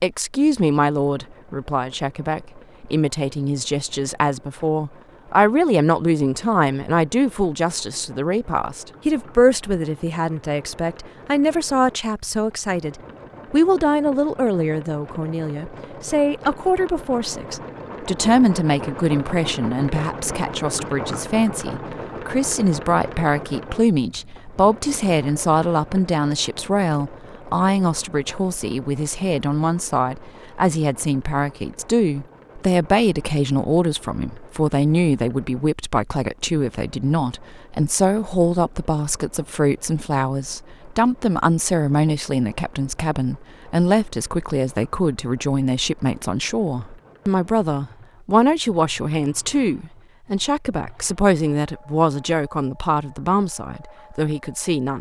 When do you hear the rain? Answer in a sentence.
You can't hear the rain here.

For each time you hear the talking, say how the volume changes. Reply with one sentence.
The talking can be heard from 0.0 to 54.9 s, at a steady volume.